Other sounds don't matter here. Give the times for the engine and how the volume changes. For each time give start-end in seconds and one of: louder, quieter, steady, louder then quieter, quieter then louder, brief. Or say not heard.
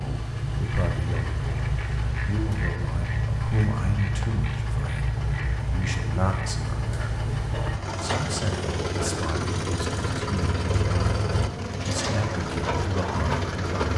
0.0-13.9 steady.